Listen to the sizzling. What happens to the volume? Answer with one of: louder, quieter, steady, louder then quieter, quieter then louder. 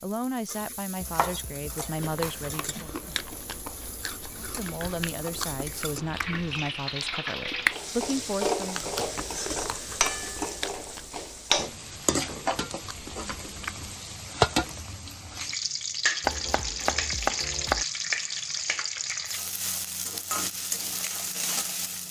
louder.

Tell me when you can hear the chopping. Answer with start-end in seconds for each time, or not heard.
1.0-2.6, 16.2-17.9.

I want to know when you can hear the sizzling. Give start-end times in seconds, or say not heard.
0.0-22.0.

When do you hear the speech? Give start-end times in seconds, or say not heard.
0.0-3.0, 4.3-8.8.